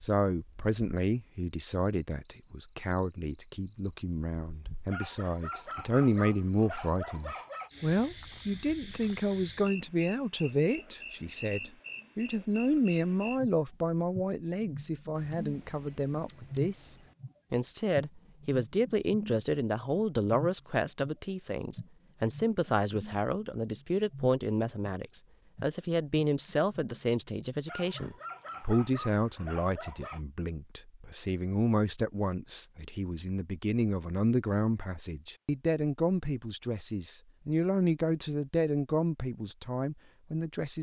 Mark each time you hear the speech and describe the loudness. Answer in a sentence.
You can hear the speech from 0.0 to 40.7 s, at a steady volume.